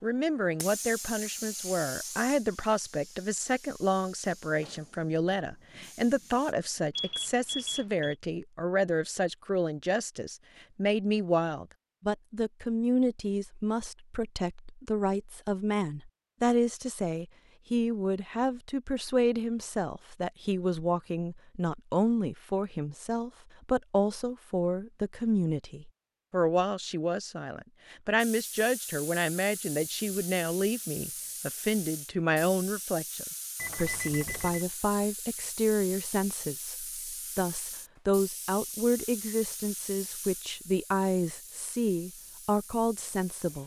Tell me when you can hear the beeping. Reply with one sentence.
You can hear the beeping from 7.0 to 8.2 s and from 33.5 to 34.6 s.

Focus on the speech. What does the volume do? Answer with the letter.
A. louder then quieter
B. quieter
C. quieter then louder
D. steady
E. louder
D.